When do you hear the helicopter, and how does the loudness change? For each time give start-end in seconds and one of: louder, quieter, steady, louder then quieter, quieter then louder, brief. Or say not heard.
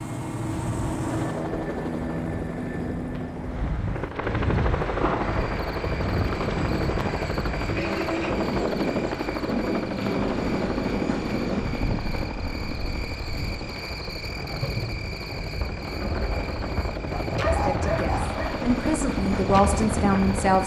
0.0-20.6 quieter then louder.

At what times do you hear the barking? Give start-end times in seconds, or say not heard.
17.2-18.6.